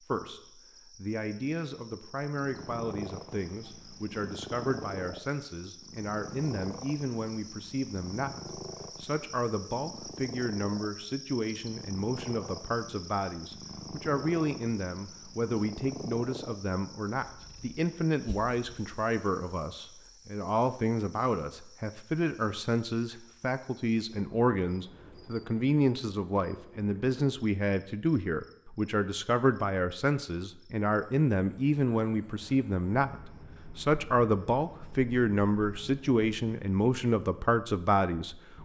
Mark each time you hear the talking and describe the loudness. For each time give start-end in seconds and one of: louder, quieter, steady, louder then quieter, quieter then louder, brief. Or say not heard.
0.1-38.5 louder.